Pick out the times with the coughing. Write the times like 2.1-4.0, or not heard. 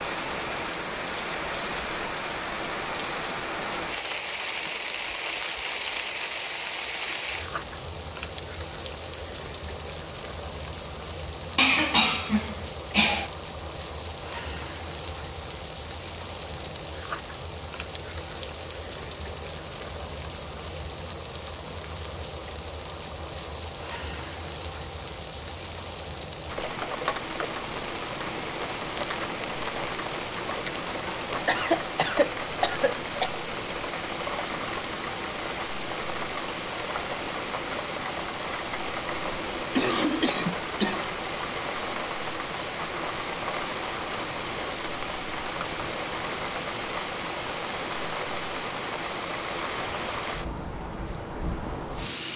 11.6-13.3, 31.0-33.4, 39.0-41.0.